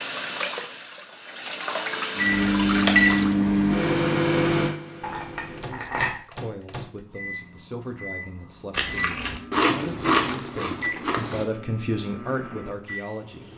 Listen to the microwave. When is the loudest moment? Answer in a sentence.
The volume of the microwave peaks at 3 seconds.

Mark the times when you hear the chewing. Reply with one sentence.
The chewing can be heard from 8.7 to 11.4 s.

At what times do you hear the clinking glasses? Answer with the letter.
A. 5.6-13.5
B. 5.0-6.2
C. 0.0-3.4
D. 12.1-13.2
B.